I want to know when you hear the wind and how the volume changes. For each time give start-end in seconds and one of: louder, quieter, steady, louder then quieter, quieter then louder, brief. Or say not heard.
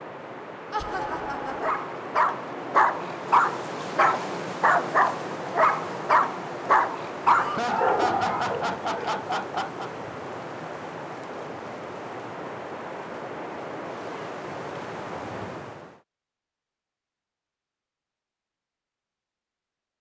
0.0-16.0 steady.